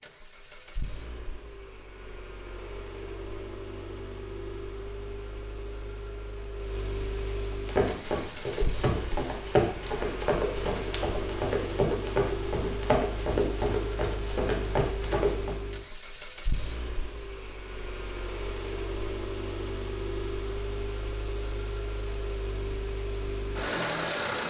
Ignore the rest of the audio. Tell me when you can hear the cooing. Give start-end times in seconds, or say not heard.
not heard.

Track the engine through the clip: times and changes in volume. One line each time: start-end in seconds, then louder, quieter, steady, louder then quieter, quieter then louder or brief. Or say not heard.
0.0-24.4 louder.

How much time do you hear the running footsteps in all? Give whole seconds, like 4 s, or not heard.
8 s.